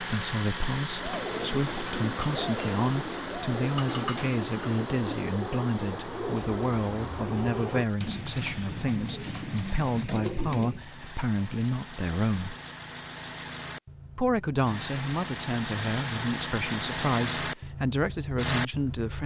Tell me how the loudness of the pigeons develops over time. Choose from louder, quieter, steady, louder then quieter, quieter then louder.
steady.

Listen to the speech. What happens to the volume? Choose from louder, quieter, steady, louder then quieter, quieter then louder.
steady.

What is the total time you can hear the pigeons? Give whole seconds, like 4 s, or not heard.
10 s.